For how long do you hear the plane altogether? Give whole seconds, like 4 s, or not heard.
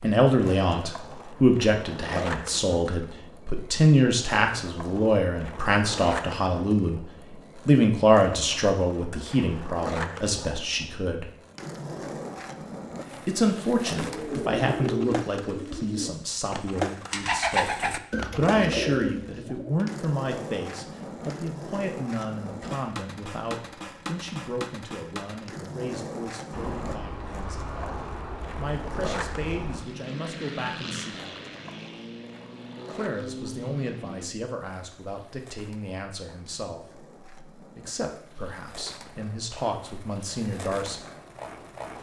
8 s.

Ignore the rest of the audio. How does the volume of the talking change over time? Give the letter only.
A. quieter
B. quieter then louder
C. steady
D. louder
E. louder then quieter
A.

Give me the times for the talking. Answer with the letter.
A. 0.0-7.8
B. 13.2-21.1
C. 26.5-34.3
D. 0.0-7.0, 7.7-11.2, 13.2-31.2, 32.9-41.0
D.